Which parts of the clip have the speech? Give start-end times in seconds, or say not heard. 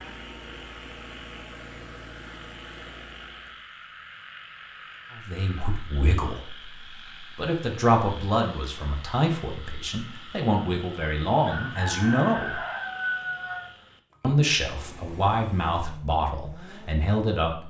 5.1-12.7, 14.2-17.6.